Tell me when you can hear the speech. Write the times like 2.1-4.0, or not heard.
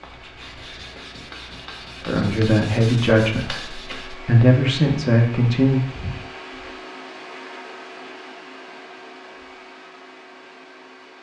2.0-5.8.